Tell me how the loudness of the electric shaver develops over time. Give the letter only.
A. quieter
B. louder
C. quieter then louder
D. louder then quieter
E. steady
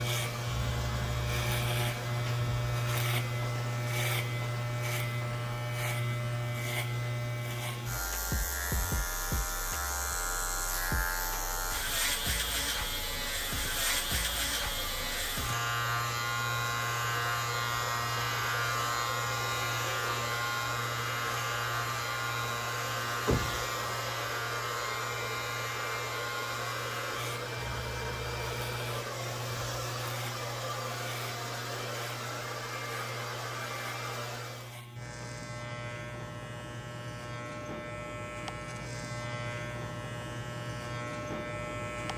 A.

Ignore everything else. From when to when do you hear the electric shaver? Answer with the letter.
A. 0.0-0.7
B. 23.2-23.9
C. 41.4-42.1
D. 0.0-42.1
D.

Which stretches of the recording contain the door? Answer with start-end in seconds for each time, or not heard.
23.2-23.9.